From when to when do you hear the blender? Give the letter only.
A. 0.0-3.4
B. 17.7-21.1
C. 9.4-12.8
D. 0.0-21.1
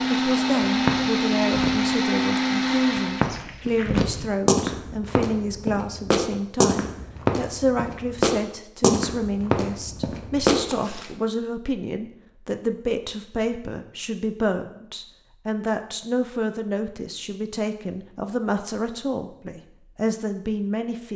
A.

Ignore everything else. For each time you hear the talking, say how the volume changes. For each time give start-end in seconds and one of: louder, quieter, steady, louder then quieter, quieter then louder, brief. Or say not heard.
0.0-21.1 steady.